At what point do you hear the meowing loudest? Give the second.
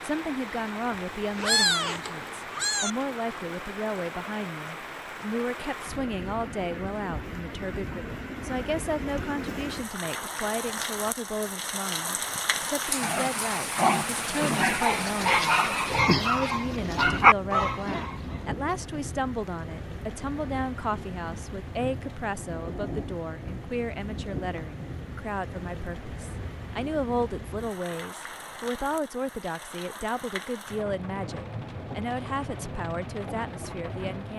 2 s.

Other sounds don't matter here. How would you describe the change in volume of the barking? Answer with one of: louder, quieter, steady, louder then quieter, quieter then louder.
louder.